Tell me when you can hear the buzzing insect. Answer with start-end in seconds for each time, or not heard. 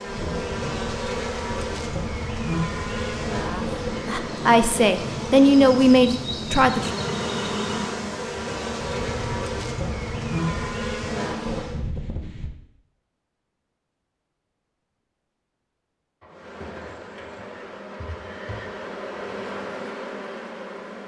0.0-11.8, 16.2-21.0.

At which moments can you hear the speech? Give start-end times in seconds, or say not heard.
3.5-6.9.